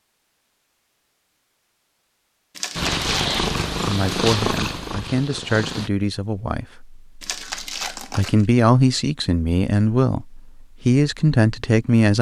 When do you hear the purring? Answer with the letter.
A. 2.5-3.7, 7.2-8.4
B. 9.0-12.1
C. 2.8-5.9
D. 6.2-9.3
C.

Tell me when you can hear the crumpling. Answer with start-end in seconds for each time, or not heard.
2.5-3.7, 7.2-8.4.